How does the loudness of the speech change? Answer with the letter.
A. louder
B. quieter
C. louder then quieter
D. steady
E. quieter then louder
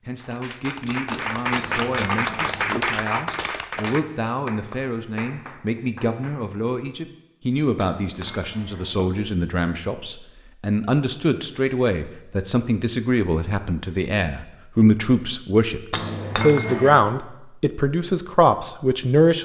A.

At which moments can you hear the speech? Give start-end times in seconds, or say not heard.
0.1-19.4.